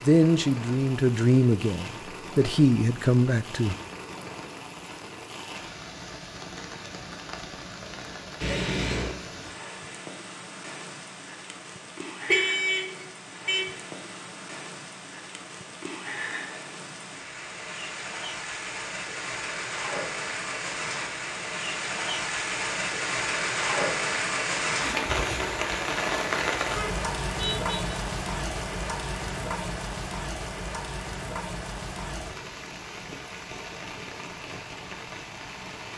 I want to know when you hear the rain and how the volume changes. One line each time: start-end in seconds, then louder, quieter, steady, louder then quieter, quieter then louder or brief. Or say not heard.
0.0-35.9 louder then quieter.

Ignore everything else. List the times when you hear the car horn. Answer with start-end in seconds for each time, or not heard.
8.4-9.2, 12.2-13.7, 26.6-27.9.